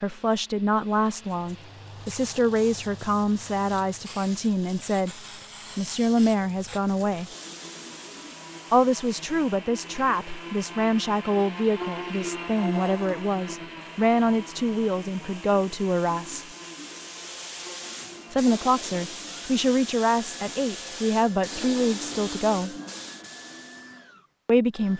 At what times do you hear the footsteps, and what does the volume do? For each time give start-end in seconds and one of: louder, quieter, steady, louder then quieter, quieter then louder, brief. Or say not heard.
not heard.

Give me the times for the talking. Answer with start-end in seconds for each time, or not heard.
0.0-7.3, 8.7-16.4, 18.3-22.8, 24.4-24.9.